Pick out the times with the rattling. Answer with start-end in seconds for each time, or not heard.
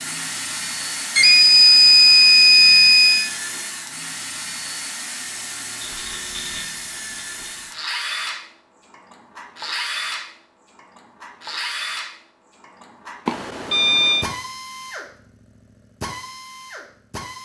5.8-7.7.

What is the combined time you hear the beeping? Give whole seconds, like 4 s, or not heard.
3 s.